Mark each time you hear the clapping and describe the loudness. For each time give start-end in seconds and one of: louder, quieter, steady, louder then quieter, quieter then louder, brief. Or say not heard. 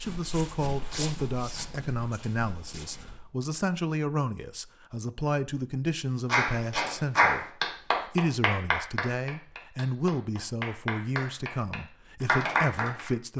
6.2-13.1 quieter then louder.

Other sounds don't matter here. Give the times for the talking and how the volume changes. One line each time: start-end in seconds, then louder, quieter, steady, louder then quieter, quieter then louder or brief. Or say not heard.
0.0-13.3 steady.